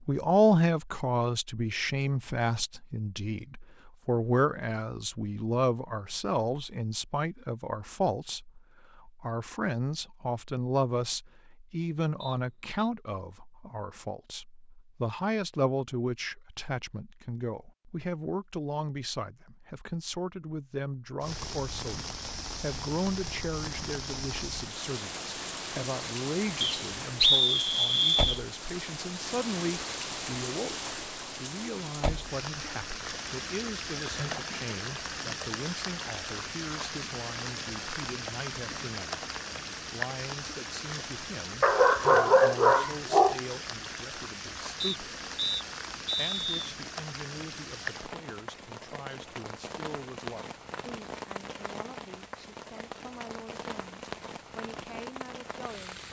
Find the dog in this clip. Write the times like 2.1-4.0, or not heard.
41.6-43.4.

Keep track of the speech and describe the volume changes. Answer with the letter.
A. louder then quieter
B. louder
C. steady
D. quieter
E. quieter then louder
D.